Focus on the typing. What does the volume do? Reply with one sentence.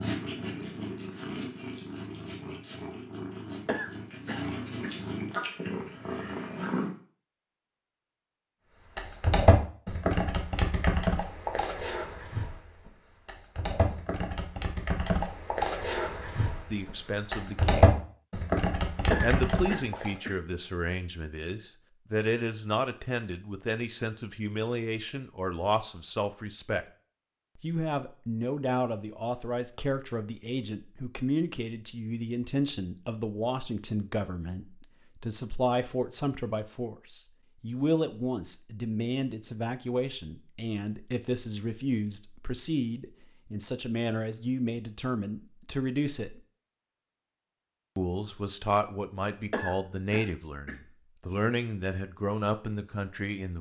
The loudness of the typing goes down, then up.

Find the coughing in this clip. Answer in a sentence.
You can hear the coughing from 3.6 to 4.9 s, from 19.1 to 20.4 s and from 49.5 to 50.8 s.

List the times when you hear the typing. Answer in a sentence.
You can hear the typing from 8.9 to 20.1 s.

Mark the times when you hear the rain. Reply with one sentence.
The rain can't be heard in this clip.